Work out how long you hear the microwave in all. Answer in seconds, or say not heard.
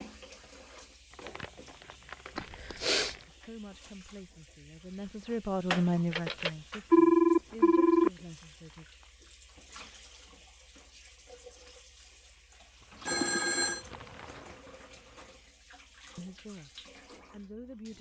not heard.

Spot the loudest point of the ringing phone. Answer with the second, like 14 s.
7 s.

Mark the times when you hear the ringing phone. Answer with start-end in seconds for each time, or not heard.
2.4-3.1, 6.1-8.1, 13.1-13.8.